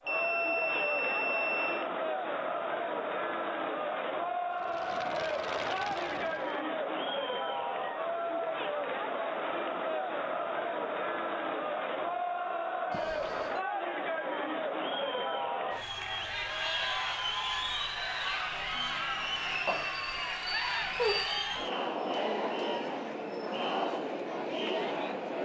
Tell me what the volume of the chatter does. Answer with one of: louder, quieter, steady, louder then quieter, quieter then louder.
steady.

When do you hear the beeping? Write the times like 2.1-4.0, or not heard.
0.1-1.9, 12.9-13.6, 19.6-21.4.